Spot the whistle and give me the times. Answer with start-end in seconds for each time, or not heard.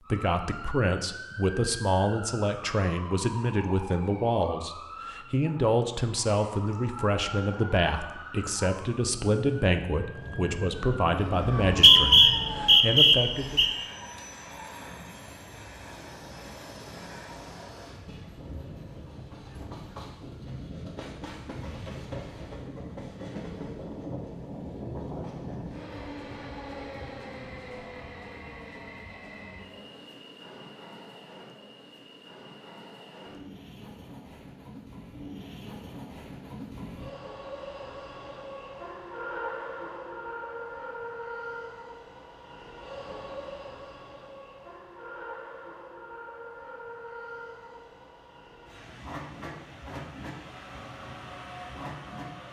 11.6-13.7.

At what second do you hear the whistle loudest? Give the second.
12 s.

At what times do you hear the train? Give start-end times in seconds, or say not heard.
11.1-52.4.